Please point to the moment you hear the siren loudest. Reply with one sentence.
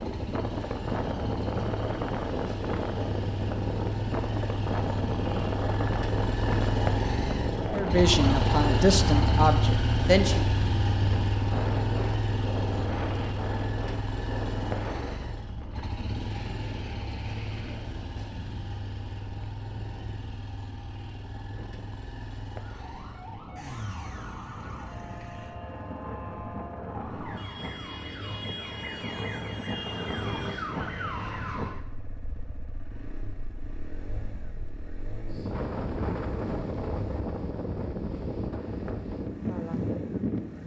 The loudest moment of the siren is at 31 seconds.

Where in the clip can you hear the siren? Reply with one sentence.
The siren can be heard from 22.6 to 31.8 s.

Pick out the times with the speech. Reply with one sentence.
You can hear the speech from 7.7 to 10.4 s.